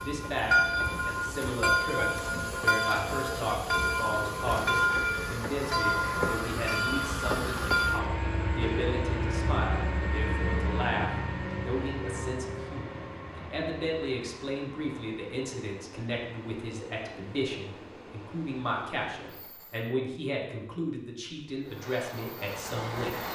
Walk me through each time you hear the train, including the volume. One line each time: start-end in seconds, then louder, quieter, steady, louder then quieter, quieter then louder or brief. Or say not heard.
0.0-19.9 quieter
21.6-23.2 brief.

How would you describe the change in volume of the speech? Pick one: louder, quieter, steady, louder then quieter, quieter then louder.
steady.